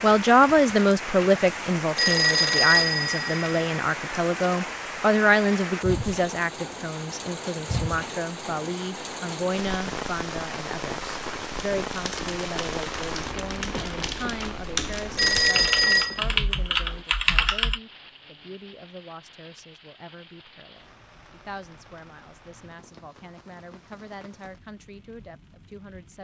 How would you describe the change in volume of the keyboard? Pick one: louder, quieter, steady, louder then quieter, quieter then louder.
louder.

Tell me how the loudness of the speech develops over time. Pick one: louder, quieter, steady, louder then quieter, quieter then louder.
quieter.